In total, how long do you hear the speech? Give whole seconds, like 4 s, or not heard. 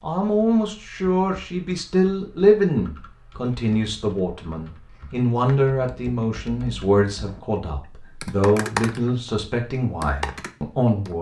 11 s.